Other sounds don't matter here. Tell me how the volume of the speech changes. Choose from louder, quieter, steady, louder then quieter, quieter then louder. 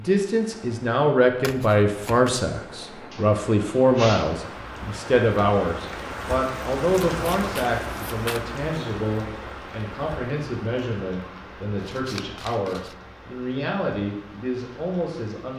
quieter.